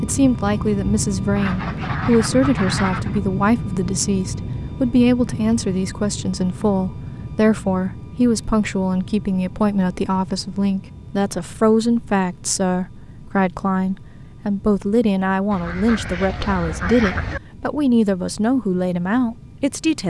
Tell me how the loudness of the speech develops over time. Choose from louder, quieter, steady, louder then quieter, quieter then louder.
steady.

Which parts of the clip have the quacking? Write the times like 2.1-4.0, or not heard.
1.4-3.2, 15.5-17.4.